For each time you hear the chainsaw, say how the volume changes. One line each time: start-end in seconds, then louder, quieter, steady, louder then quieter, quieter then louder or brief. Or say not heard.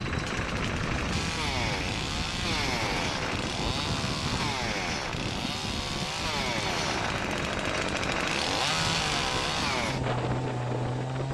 0.0-11.2 steady.